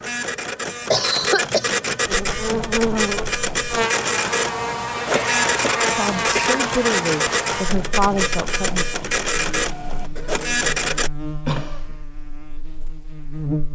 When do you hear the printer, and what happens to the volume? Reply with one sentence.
The printer can be heard from 0.0 to 11.1 s, at a steady volume.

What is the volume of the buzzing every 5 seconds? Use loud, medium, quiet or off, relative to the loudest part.
loud, loud, medium.